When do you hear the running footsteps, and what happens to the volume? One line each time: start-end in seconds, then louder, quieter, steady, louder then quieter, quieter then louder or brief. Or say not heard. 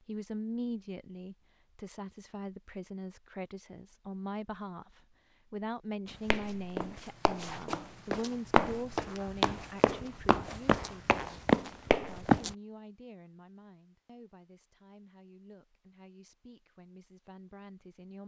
6.1-12.6 louder.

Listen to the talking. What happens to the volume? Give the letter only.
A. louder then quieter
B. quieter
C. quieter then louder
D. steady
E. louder
B.